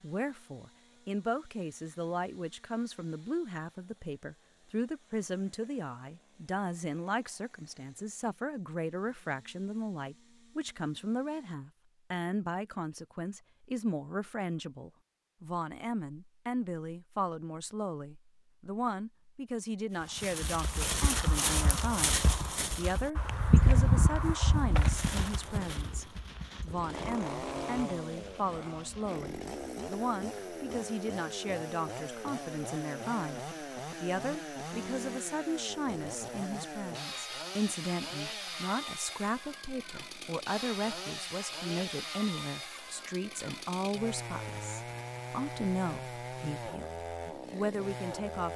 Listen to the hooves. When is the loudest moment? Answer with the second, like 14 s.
24 s.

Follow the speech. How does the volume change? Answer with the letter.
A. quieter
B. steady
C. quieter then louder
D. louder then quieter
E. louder
B.